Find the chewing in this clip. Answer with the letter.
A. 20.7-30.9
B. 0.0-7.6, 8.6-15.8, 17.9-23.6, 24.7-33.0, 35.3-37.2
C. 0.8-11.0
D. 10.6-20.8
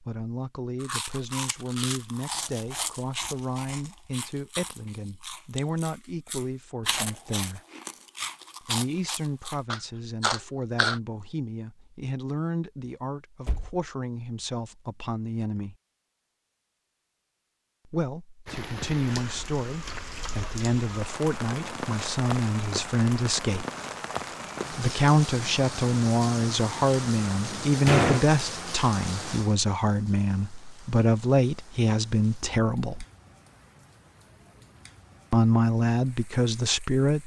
C.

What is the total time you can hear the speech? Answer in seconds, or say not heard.
31 s.